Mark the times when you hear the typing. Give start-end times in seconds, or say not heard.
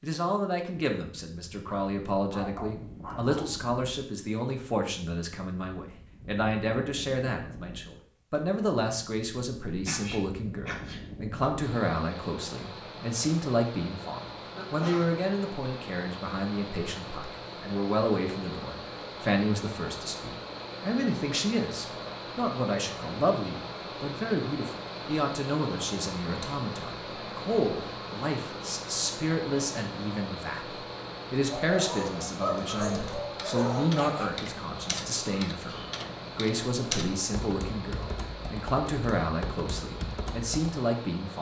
32.9-40.8.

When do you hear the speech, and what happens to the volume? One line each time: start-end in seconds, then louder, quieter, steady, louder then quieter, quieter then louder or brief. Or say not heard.
0.0-41.3 steady.